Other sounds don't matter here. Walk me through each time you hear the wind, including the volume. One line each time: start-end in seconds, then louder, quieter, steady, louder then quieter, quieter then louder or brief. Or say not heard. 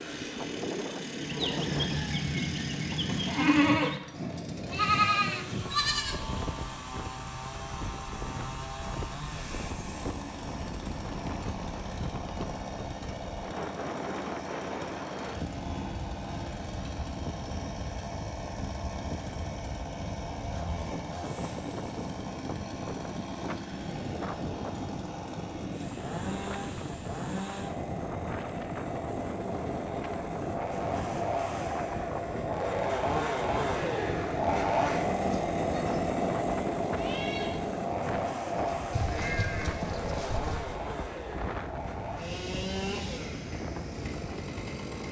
0.0-45.0 steady.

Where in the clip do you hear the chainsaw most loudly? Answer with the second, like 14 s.
35 s.